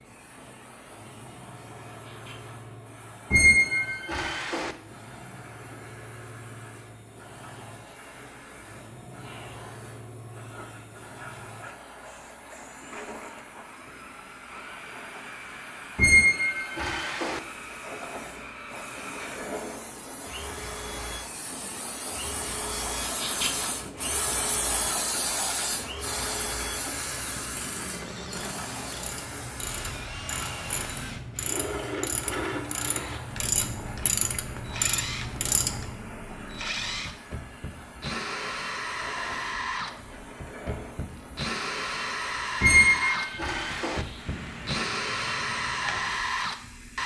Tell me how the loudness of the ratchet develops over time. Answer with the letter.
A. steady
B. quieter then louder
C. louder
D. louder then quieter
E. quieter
C.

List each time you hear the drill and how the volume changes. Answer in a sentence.
You can hear the drill from 0.0 to 47.0 s, getting louder.